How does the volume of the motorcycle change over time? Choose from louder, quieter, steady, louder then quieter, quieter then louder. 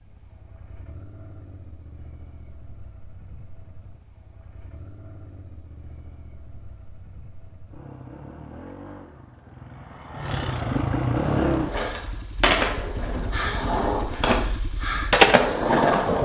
louder then quieter.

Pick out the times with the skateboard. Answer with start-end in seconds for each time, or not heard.
11.2-16.1.